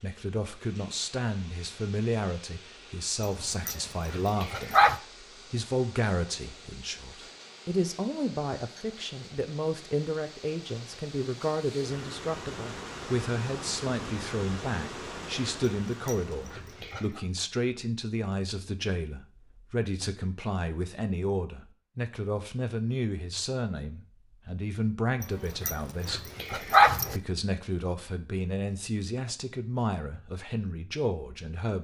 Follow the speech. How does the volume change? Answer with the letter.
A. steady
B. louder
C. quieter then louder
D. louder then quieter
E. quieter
A.